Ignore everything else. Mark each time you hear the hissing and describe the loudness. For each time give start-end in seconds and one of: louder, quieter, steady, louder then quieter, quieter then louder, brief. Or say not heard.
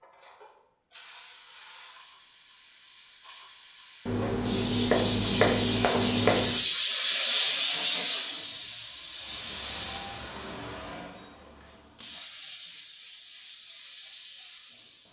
0.0-15.0 louder then quieter.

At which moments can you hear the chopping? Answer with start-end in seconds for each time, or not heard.
4.0-6.6.